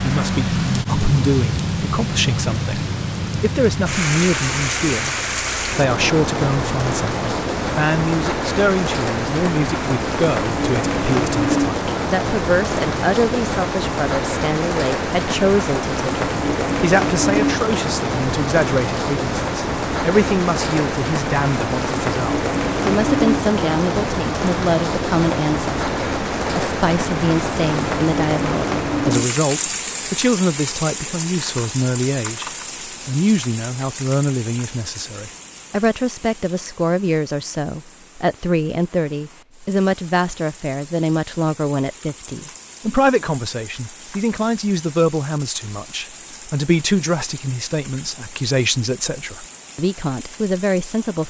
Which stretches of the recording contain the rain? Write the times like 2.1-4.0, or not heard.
0.0-51.2.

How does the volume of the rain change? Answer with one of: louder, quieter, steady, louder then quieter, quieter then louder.
quieter.